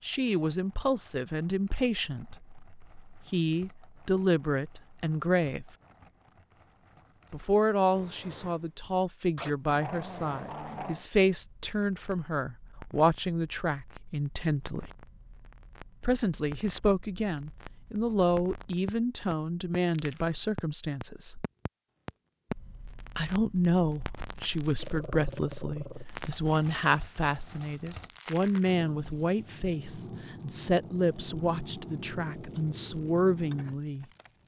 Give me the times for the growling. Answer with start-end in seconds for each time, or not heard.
9.3-11.1, 24.8-26.1.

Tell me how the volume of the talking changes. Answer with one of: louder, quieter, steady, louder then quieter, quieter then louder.
steady.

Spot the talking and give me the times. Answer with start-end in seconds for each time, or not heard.
0.0-5.7, 7.3-14.9, 16.0-21.4, 23.1-34.0.